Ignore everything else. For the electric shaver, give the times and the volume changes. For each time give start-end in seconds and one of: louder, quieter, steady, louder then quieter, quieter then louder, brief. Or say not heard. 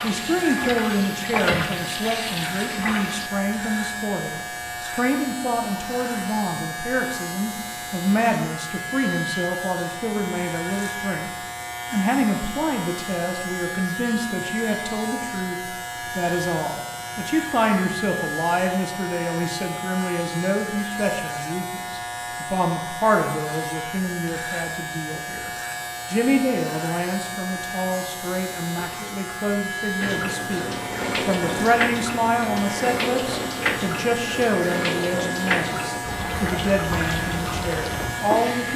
0.0-38.7 steady.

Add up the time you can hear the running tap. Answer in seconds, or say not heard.
12 s.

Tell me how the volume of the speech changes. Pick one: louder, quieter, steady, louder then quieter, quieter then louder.
steady.